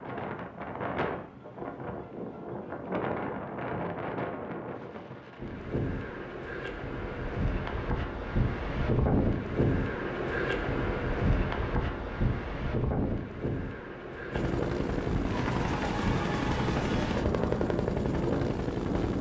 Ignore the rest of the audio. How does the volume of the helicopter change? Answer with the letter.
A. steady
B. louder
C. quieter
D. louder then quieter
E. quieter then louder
A.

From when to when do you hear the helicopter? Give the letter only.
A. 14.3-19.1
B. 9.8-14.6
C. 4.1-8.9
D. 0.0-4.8
A.